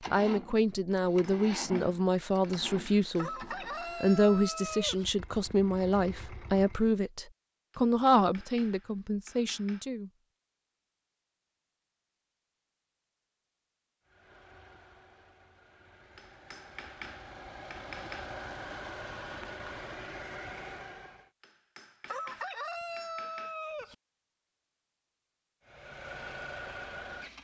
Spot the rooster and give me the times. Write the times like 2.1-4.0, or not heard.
3.1-5.0, 22.1-23.9.